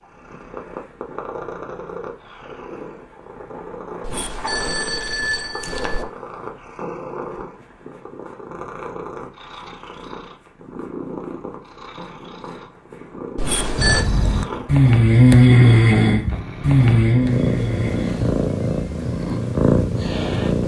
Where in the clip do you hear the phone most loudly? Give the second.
14 s.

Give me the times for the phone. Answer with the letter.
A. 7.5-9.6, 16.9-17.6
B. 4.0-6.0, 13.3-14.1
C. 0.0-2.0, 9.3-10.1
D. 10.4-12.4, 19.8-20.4
B.